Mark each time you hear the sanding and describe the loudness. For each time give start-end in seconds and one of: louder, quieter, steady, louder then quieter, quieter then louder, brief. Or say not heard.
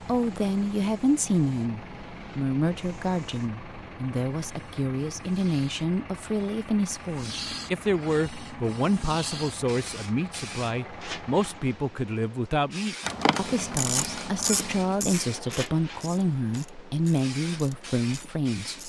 not heard.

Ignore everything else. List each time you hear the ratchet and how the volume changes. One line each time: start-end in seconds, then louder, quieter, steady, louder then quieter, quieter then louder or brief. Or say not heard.
13.0-18.8 quieter.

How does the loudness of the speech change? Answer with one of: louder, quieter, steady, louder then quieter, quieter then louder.
steady.